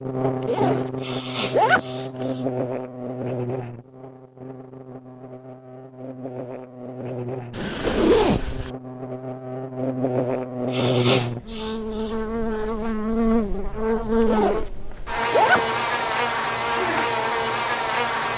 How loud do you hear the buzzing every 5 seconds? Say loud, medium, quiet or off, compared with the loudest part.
medium, medium, loud, loud.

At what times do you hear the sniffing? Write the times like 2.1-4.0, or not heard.
1.0-2.5, 10.7-12.2.